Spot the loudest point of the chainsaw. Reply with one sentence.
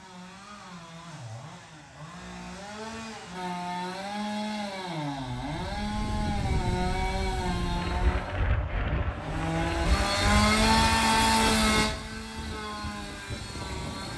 The volume of the chainsaw peaks at 11 seconds.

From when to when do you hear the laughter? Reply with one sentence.
You can't hear the laughter here.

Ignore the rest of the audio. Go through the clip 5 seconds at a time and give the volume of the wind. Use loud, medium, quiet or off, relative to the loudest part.
off, loud, loud.